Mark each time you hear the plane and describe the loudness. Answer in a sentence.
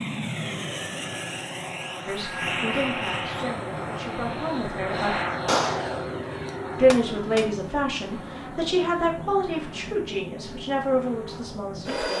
The plane can be heard from 0.0 to 12.1 s, getting quieter.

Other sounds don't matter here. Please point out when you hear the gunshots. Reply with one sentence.
The gunshots can be heard from 5.5 to 7.5 s.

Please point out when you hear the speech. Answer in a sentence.
The speech can be heard from 2.0 to 5.2 s and from 6.8 to 12.1 s.